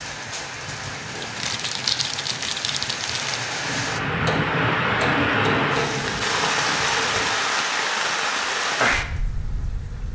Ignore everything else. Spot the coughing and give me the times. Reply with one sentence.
You can't hear the coughing here.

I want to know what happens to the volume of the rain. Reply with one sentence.
The volume of the rain goes up.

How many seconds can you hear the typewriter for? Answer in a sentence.
You can hear the typewriter for 2 seconds altogether.